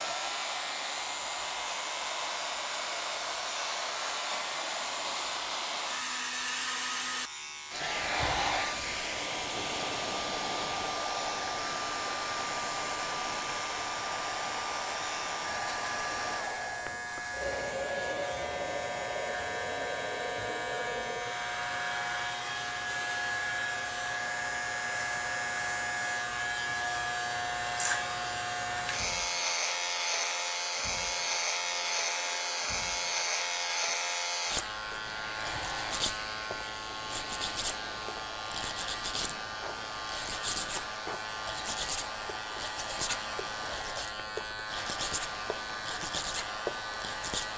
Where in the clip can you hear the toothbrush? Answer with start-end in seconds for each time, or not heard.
not heard.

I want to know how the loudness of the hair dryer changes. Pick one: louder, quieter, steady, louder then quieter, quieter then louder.
quieter.